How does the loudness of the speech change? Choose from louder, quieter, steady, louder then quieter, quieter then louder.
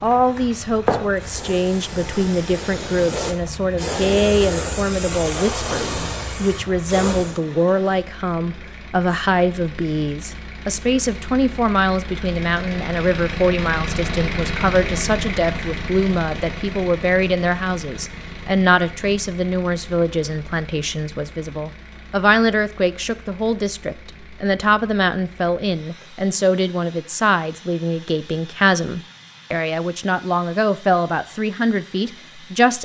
steady.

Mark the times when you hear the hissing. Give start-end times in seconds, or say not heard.
0.0-7.4.